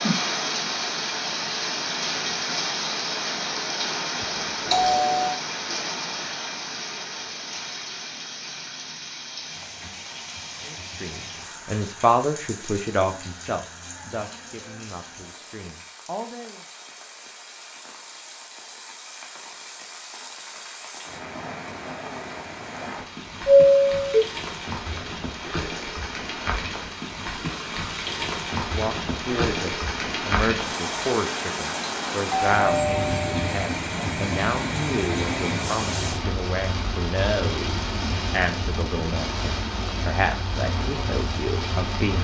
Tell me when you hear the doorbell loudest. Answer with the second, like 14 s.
24 s.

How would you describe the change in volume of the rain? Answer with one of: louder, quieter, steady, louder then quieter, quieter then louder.
quieter then louder.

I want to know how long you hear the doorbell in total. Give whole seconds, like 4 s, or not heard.
3 s.